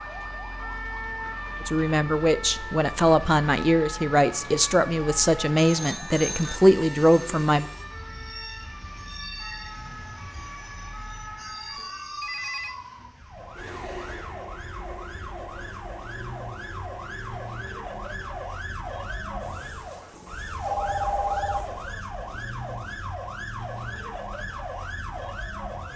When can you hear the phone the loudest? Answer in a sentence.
The volume of the phone peaks at 21 seconds.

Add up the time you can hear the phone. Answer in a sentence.
You can hear the phone for 3 seconds altogether.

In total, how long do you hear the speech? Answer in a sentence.
The speech can be heard for 6 seconds in total.